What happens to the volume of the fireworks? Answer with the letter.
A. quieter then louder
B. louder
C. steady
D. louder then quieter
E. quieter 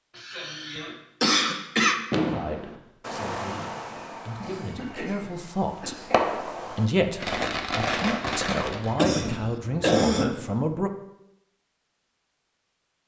A.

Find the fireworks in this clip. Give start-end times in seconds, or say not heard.
2.1-8.9.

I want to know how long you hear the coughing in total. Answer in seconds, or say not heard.
5 s.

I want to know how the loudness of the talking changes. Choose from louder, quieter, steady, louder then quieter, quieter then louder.
louder.